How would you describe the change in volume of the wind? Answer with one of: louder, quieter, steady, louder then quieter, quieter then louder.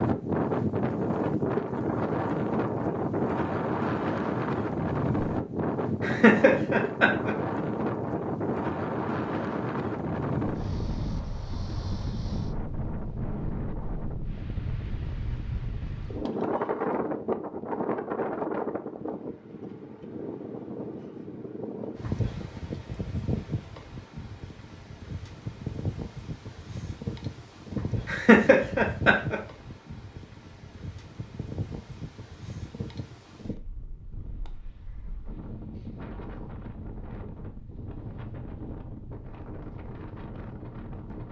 quieter.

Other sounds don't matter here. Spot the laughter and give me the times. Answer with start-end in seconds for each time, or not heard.
6.0-7.3, 28.1-29.4.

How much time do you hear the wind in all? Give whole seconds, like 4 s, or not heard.
41 s.